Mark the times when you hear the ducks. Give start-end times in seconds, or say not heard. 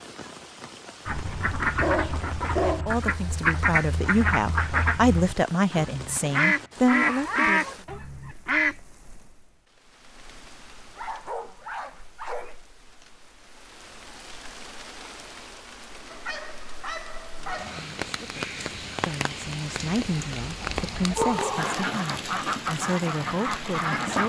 1.1-8.8, 20.6-24.2.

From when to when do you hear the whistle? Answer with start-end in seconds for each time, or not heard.
not heard.